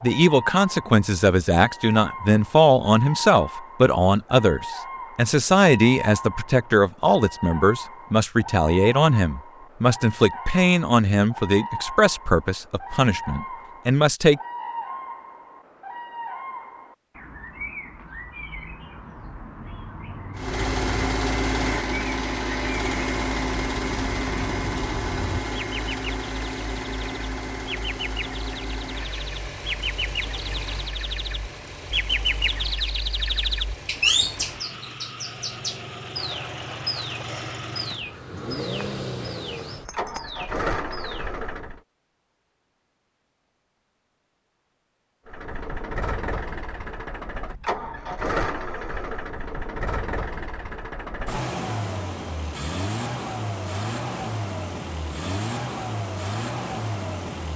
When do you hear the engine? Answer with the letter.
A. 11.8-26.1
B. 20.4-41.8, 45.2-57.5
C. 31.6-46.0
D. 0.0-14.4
B.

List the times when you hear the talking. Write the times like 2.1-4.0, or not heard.
0.0-14.4.